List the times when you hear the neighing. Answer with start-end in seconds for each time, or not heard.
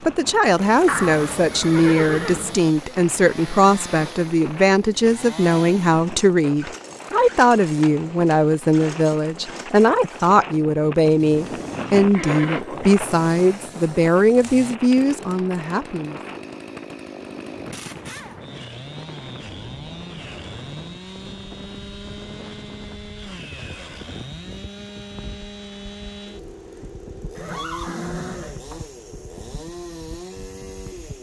0.8-2.5, 12.1-12.9, 27.4-28.9.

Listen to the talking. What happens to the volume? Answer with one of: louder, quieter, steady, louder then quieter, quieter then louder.
steady.